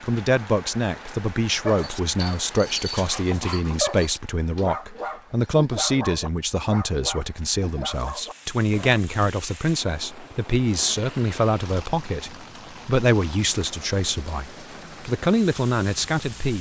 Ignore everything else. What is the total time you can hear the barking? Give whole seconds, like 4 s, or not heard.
7 s.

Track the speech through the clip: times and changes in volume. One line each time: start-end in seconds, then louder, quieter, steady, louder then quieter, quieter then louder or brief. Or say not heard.
0.0-16.5 steady.